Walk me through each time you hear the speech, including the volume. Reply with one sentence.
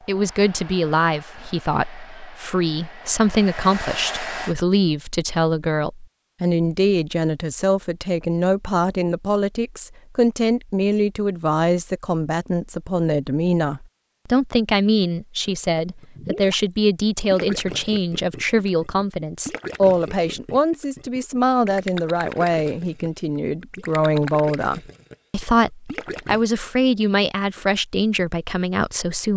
You can hear the speech from 0.1 to 29.3 s, at a steady volume.